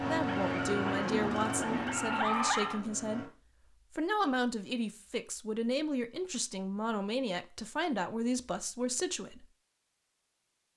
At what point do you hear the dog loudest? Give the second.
2 s.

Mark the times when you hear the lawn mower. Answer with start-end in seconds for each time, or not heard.
0.0-3.3.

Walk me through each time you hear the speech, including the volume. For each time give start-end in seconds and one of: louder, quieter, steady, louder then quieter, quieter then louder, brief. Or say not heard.
0.0-9.4 steady.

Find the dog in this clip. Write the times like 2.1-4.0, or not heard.
0.1-2.9.